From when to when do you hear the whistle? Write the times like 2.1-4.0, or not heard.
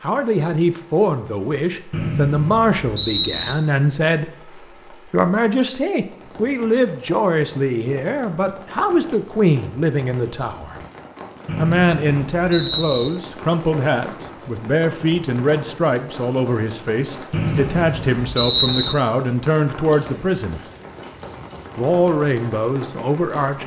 1.9-3.5, 11.4-13.1, 17.3-18.9.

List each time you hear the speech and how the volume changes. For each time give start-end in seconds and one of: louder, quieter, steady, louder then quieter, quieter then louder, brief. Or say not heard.
0.0-10.8 steady
11.6-20.6 steady
21.8-23.6 brief.